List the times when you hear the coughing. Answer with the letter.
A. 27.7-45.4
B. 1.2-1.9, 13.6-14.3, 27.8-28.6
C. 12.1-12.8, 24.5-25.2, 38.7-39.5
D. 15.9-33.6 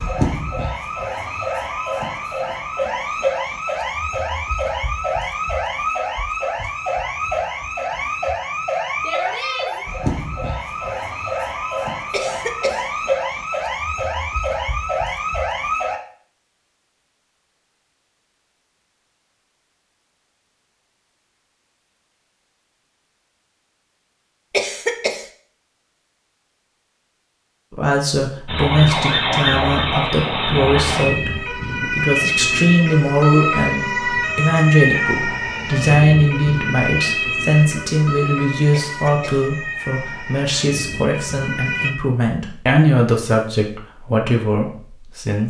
C.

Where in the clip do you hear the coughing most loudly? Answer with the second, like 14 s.
25 s.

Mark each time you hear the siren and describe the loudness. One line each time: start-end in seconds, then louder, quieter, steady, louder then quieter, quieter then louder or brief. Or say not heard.
0.0-16.0 steady
28.4-42.0 quieter.